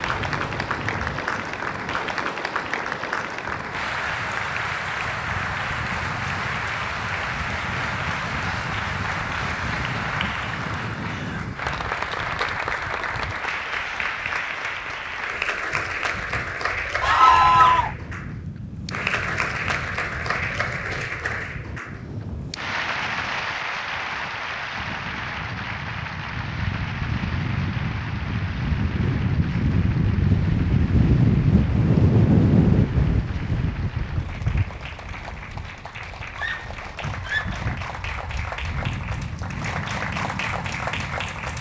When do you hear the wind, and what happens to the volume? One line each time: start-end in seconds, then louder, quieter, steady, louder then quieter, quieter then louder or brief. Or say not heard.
0.0-41.5 louder then quieter.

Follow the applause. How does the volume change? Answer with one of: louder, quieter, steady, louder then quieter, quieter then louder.
quieter.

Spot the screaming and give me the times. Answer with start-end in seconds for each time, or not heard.
17.0-17.9, 36.4-37.6.